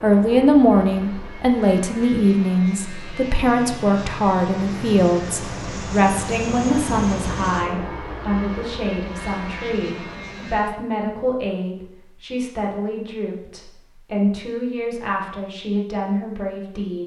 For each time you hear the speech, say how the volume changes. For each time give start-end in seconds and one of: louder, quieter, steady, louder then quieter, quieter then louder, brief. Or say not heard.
0.0-17.0 quieter.